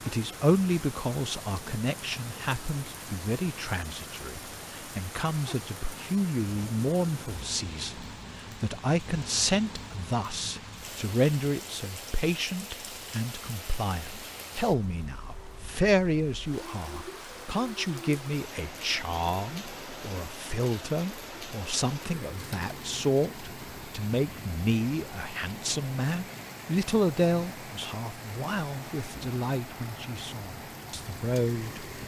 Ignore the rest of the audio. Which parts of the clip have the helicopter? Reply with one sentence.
The helicopter can't be heard in this clip.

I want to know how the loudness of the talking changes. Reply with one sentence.
The volume of the talking stays about the same.